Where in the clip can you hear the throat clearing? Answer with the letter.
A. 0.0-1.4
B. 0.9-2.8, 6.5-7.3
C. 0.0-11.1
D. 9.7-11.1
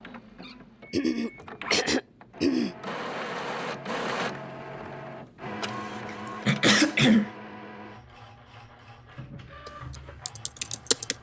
B.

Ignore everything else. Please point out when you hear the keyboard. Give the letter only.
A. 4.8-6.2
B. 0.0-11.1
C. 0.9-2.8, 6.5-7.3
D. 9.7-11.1
D.